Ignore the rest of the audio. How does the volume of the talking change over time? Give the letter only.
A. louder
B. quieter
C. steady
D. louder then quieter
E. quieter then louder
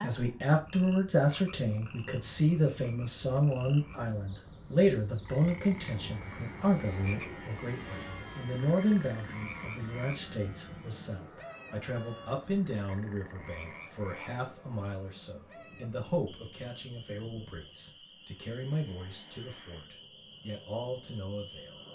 B.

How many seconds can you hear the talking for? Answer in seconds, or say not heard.
22 s.